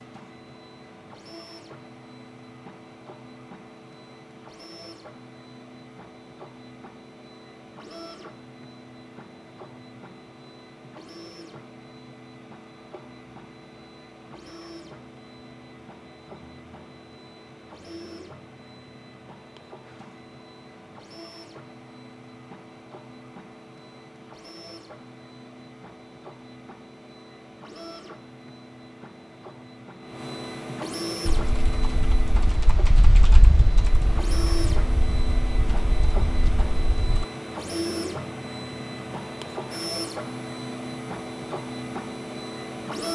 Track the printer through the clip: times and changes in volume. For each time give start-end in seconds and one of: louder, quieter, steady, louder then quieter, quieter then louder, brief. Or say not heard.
0.0-43.1 louder.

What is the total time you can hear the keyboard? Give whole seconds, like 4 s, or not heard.
6 s.